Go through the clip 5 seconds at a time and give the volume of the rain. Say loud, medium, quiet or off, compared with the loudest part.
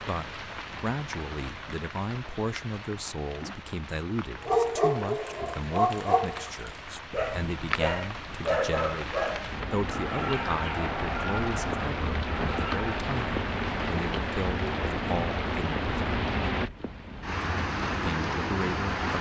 medium, medium, loud, loud.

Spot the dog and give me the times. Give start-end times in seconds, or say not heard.
4.4-12.8.